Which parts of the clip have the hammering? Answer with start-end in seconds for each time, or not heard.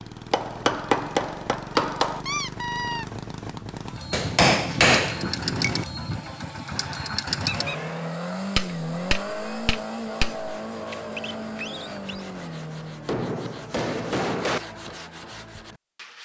0.3-2.2, 4.1-5.8, 8.6-10.5, 13.1-14.6.